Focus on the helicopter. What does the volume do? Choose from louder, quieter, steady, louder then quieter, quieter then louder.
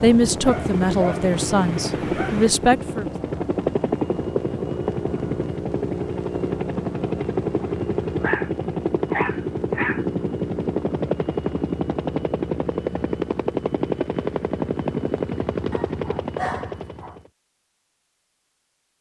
steady.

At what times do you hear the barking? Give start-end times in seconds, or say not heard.
0.4-2.5, 8.2-10.1, 15.7-17.1.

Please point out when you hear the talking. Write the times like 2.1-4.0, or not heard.
0.0-3.0.